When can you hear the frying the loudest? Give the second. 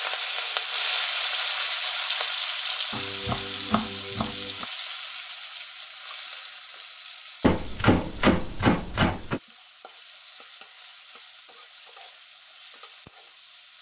1 s.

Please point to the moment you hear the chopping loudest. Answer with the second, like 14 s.
8 s.